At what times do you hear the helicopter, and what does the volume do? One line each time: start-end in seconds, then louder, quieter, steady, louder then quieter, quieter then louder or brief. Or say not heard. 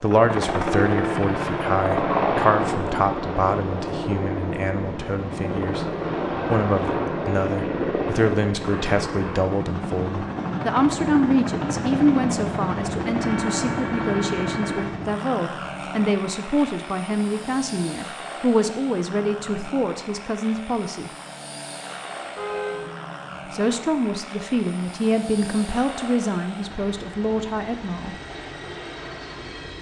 0.0-29.7 quieter.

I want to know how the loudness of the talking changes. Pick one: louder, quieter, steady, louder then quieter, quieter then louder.
steady.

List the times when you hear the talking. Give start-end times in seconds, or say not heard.
0.0-21.1, 23.5-28.1.